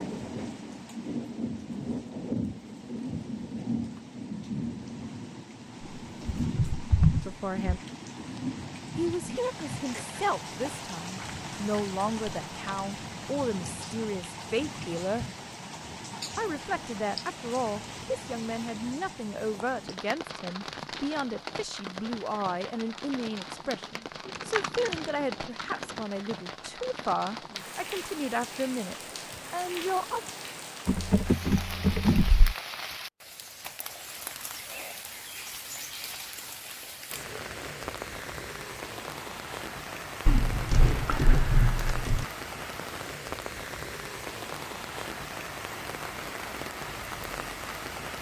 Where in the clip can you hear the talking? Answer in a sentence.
You can hear the talking from 7.2 to 7.8 s, from 8.9 to 15.3 s and from 16.4 to 30.2 s.